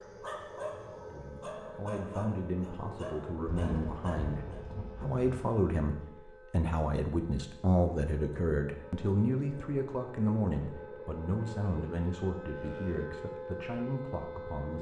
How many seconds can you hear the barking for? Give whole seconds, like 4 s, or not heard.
5 s.